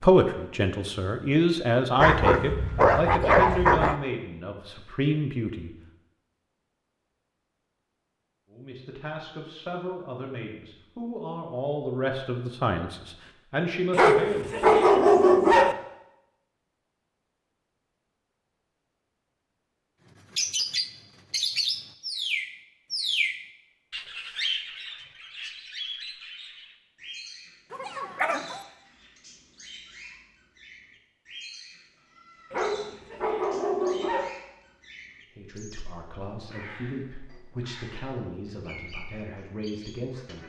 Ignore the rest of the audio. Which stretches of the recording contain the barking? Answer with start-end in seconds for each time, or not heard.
1.9-4.0, 13.9-15.8, 27.7-28.6, 32.5-34.3.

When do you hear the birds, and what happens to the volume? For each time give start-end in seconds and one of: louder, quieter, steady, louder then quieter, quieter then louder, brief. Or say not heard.
20.4-40.4 quieter.